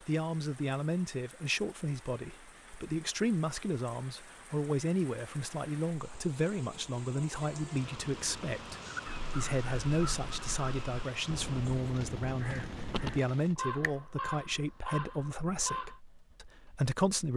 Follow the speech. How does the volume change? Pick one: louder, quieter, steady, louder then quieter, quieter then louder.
steady.